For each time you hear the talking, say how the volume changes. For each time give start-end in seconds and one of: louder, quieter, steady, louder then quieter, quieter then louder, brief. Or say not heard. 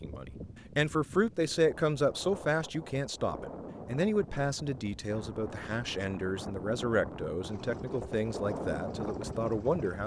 0.0-10.0 quieter.